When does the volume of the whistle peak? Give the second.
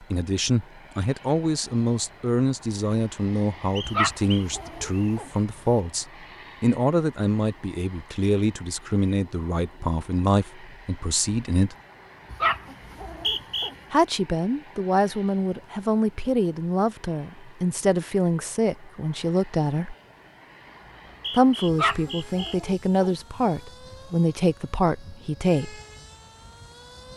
13 s.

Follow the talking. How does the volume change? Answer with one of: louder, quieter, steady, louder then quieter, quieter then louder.
steady.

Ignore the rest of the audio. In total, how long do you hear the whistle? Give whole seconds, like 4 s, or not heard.
4 s.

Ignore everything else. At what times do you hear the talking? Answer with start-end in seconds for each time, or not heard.
0.0-11.8, 13.9-19.9, 21.3-25.8.